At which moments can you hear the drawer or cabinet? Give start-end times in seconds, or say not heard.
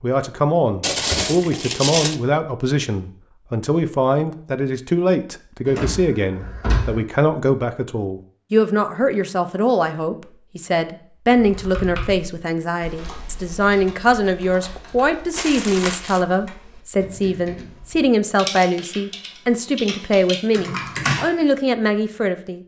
5.7-7.0.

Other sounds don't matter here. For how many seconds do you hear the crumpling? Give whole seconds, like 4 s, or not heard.
2 s.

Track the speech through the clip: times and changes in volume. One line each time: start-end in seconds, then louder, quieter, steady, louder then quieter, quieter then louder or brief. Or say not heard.
0.0-22.6 steady.